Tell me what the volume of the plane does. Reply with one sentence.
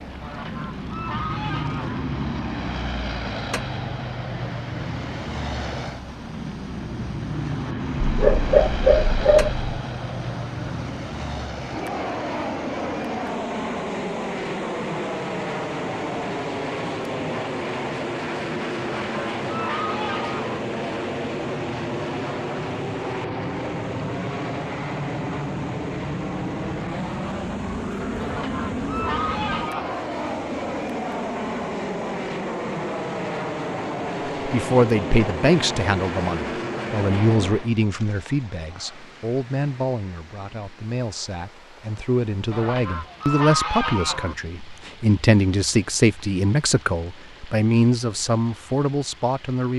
The loudness of the plane stays about the same.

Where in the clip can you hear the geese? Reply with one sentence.
You can hear the geese from 0.2 to 2.0 s, from 18.8 to 20.6 s, from 28.1 to 30.1 s and from 42.5 to 44.4 s.